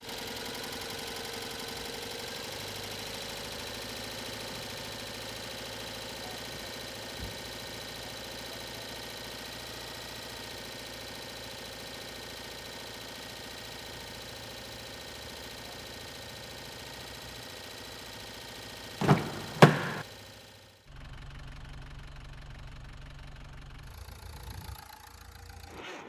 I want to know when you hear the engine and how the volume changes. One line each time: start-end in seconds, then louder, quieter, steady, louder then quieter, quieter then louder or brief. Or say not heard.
0.0-26.0 quieter.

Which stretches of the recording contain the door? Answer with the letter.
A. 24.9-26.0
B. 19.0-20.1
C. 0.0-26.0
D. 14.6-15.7
B.